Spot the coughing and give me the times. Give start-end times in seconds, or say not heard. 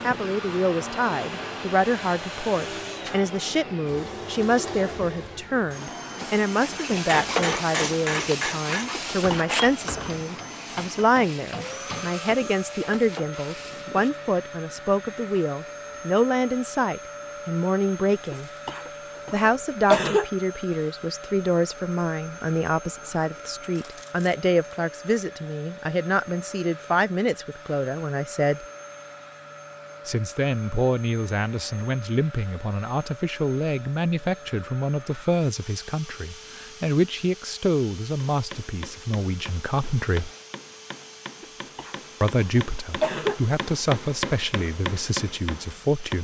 8.9-9.6, 18.3-20.2, 41.4-43.4.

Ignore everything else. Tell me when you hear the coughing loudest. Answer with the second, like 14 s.
20 s.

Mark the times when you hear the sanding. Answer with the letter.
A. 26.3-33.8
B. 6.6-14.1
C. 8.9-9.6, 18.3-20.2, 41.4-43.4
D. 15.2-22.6
B.